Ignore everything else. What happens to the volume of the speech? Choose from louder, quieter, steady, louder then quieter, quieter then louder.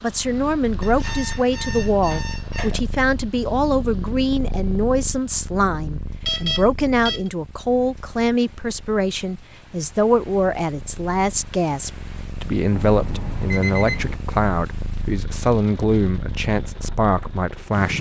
steady.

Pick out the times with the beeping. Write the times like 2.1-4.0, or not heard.
0.8-2.9, 6.2-7.3, 12.7-14.2.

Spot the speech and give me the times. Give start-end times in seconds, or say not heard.
0.0-17.9.